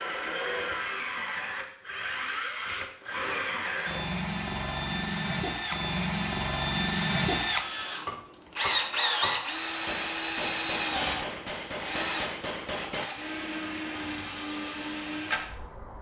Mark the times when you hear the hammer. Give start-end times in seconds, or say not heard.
8.1-13.1.